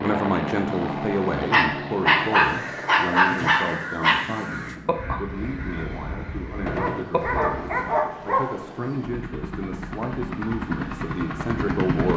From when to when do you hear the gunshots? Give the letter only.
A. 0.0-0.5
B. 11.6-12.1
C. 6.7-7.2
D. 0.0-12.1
C.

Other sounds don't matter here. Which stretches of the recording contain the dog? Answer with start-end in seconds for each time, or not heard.
1.5-4.2, 6.8-8.6.